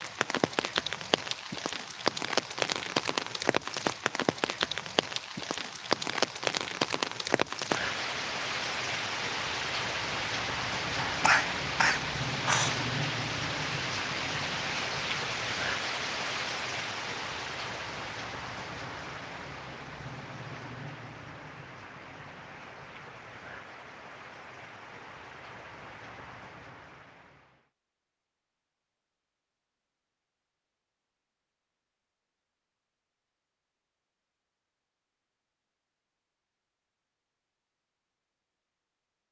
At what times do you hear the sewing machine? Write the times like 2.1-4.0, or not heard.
not heard.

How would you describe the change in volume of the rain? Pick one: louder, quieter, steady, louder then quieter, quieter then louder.
quieter.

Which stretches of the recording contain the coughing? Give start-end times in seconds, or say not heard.
11.1-12.8.